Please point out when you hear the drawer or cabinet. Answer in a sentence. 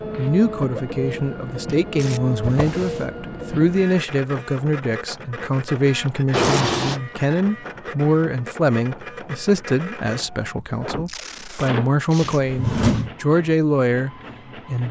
You can hear the drawer or cabinet from 2.4 to 3.0 s, from 6.3 to 7.0 s and from 12.2 to 13.1 s.